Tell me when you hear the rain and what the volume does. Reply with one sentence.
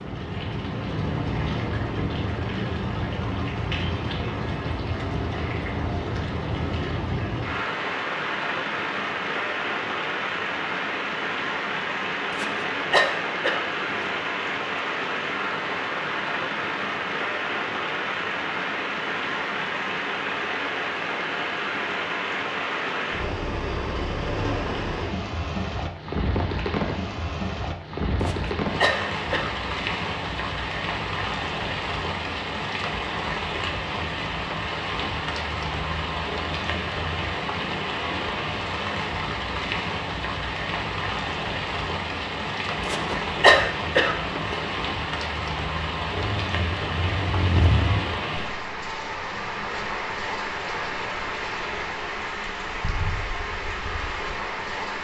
You can hear the rain from 0.0 to 55.0 s, at a steady volume.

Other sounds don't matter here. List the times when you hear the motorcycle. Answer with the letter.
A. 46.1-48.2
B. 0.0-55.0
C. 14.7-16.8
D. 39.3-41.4
A.